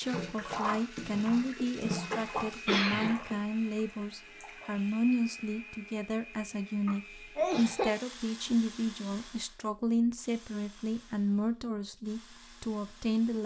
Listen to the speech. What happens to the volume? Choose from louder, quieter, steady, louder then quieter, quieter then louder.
steady.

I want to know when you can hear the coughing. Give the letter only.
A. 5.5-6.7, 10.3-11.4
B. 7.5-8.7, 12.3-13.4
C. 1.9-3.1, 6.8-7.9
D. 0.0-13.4
C.